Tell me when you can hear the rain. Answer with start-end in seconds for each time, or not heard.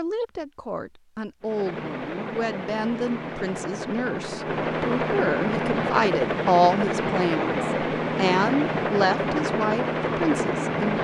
not heard.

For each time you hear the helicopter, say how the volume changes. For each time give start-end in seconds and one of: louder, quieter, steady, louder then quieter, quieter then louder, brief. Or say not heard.
1.4-11.0 louder.